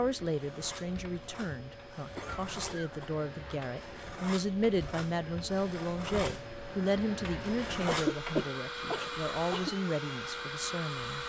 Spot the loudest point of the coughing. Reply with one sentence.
The volume of the coughing peaks at 8 seconds.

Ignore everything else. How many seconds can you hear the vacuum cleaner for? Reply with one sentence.
You can hear the vacuum cleaner for 11 seconds altogether.